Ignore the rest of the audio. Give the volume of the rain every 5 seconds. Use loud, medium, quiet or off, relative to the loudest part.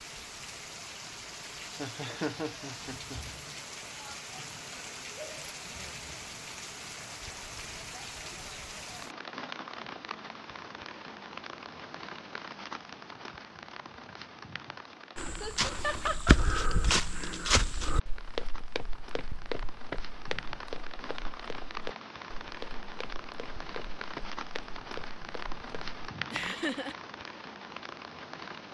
loud, loud, loud, medium, loud, loud.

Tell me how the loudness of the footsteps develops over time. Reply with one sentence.
The volume of the footsteps goes down.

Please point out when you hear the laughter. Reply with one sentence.
The laughter can be heard from 1.8 to 3.2 s, from 15.4 to 16.4 s and from 26.3 to 26.9 s.